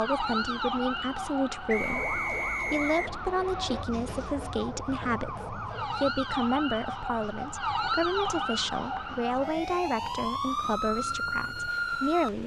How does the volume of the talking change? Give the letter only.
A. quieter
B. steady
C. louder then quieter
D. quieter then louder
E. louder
B.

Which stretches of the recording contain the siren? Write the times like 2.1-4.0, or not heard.
0.0-12.3.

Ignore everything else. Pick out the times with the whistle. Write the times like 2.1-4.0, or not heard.
1.6-3.1, 8.2-9.2.